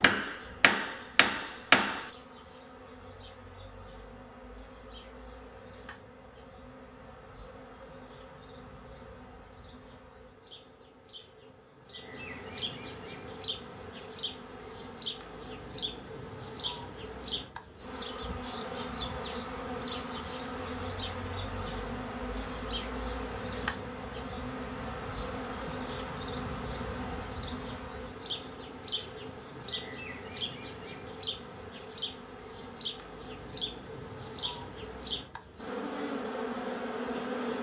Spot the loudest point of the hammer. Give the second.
2 s.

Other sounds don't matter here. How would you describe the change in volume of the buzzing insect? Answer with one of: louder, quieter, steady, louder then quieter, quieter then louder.
louder.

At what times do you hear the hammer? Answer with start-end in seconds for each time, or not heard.
0.0-2.1.